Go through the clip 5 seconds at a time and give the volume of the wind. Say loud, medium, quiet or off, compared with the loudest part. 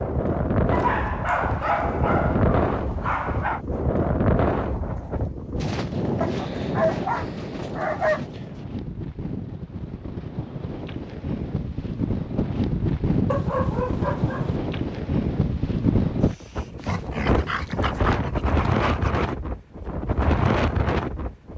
loud, medium, loud, loud, loud.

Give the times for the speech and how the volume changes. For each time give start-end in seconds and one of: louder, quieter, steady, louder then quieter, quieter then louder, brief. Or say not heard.
not heard.